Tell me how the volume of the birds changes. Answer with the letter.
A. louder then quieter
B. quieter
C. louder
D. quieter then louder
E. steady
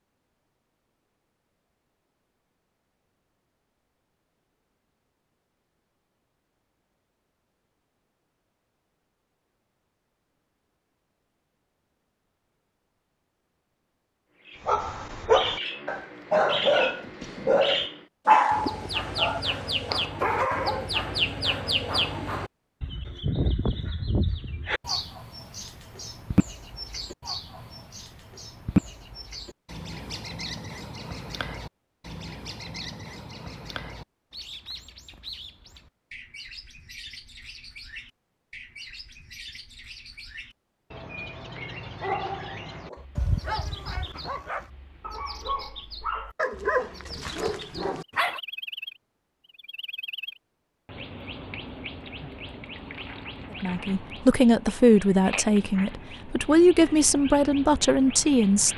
B.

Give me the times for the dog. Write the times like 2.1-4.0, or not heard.
14.7-20.9, 42.0-48.4.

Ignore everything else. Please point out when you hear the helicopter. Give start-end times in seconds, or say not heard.
not heard.